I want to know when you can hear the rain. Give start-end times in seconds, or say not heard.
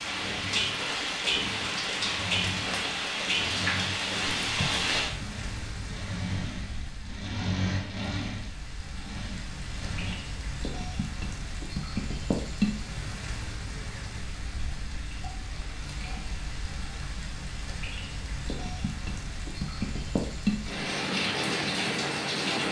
0.0-22.6.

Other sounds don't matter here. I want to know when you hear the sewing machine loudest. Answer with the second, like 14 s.
8 s.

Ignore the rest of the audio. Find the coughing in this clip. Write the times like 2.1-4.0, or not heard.
not heard.